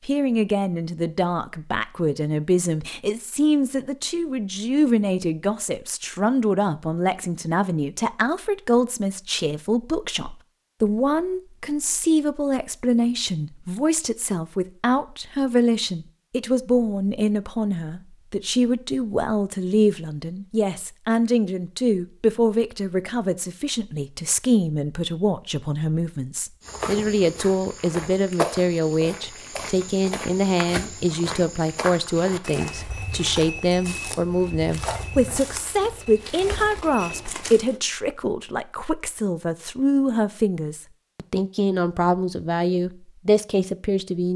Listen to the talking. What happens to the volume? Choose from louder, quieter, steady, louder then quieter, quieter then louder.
steady.